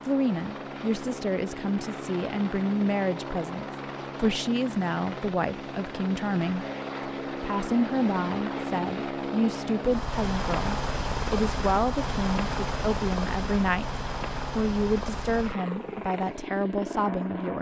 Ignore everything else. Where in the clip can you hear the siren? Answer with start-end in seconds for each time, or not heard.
not heard.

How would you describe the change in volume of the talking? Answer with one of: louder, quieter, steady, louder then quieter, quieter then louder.
steady.